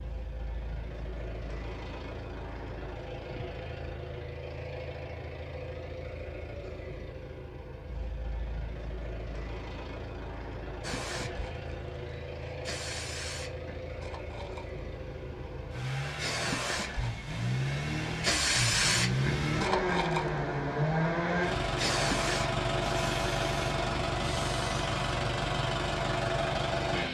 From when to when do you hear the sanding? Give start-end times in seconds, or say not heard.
not heard.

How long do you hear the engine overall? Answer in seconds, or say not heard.
27 s.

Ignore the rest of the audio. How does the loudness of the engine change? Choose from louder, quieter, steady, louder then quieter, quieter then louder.
louder.